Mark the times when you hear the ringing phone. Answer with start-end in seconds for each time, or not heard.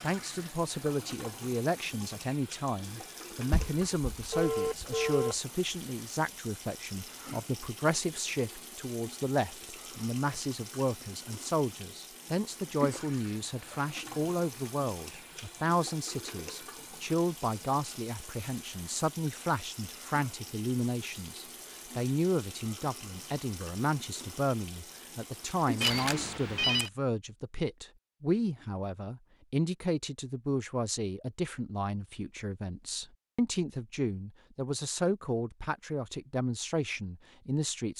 3.5-5.3, 25.8-26.9.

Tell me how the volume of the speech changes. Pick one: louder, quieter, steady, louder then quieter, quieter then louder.
steady.